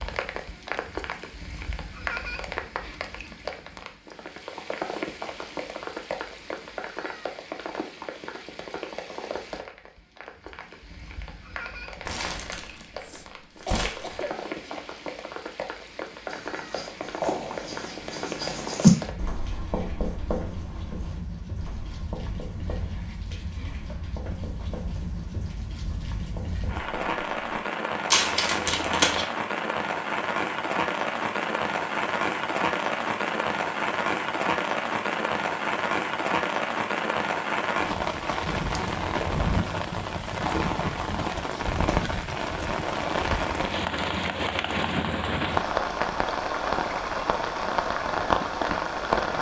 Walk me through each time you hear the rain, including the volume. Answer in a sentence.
The rain can be heard from 0.0 to 49.3 s, getting louder.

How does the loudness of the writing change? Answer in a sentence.
The loudness of the writing goes up, then down.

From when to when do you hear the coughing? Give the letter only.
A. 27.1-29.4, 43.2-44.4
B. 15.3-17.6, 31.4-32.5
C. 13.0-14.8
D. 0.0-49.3
C.